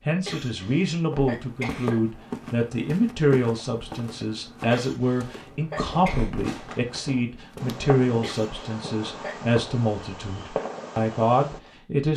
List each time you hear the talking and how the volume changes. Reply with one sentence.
You can hear the talking from 0.1 to 12.1 s, at a steady volume.